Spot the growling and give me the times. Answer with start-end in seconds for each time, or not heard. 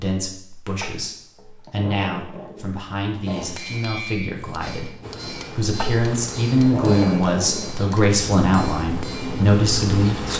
0.8-3.5, 5.8-7.9.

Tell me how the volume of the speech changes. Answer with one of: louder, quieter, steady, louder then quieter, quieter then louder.
louder.